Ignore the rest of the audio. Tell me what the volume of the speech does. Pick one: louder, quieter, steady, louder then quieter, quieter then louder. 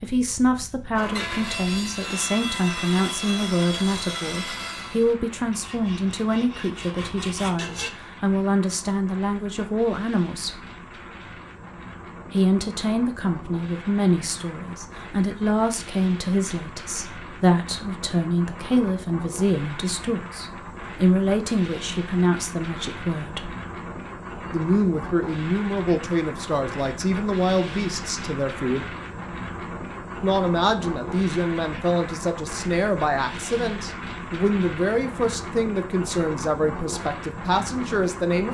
steady.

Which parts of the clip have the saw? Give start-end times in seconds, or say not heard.
0.9-7.9.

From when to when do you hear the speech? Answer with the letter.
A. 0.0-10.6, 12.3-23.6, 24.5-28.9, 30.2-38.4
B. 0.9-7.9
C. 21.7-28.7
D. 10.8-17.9
A.